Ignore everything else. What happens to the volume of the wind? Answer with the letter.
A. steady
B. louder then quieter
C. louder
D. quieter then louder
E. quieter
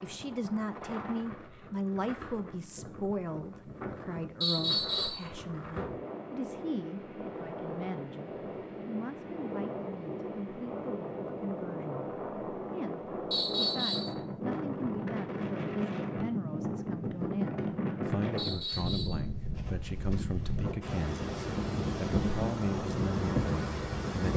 C.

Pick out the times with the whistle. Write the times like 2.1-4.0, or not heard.
4.4-5.2, 13.3-14.2, 18.4-19.2.